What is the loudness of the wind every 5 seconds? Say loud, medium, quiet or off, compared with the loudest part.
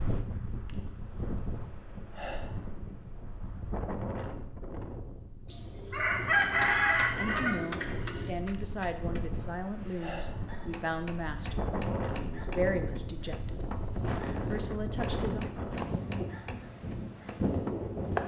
medium, medium, loud, loud.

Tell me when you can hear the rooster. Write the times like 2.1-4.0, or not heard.
5.5-8.3.